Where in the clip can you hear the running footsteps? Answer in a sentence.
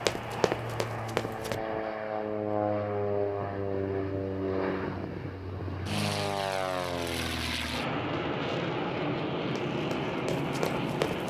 You can hear the running footsteps from 0.1 to 1.6 s and from 9.7 to 11.2 s.